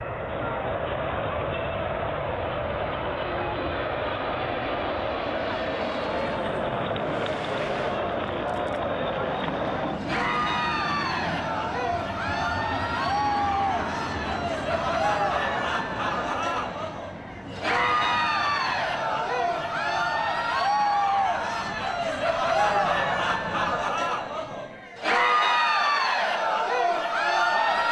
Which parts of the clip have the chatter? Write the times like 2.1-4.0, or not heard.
0.0-27.8.